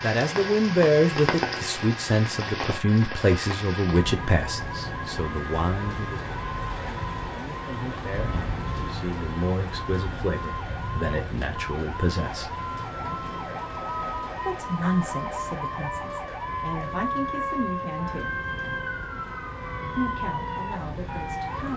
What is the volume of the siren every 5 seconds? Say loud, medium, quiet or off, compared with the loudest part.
medium, medium, loud, loud, loud.